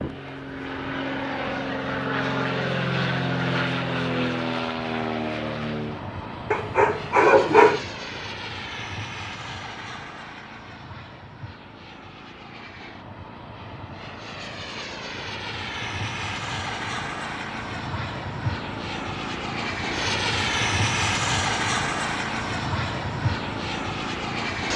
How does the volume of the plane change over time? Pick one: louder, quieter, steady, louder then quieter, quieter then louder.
quieter then louder.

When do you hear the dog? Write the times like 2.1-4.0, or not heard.
6.5-7.9.